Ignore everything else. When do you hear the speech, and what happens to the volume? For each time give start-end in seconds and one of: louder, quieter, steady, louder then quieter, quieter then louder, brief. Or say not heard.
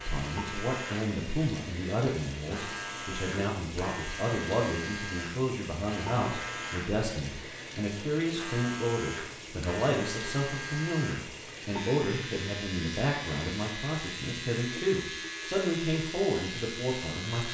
0.1-17.5 steady.